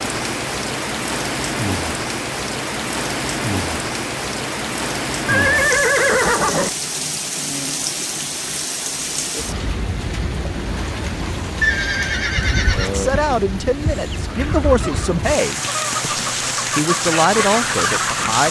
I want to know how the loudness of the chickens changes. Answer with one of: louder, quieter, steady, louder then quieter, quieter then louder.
louder.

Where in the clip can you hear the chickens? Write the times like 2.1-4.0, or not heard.
14.2-18.4.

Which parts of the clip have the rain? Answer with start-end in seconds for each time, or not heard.
0.0-18.4.